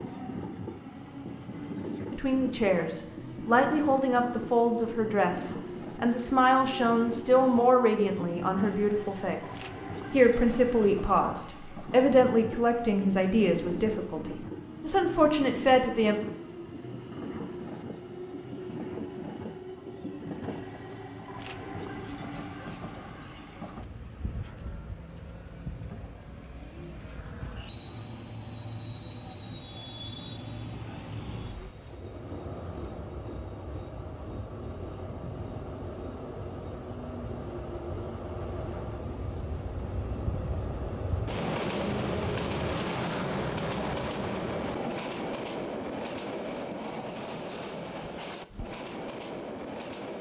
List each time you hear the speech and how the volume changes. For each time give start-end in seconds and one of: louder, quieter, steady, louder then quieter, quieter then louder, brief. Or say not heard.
2.1-16.1 steady.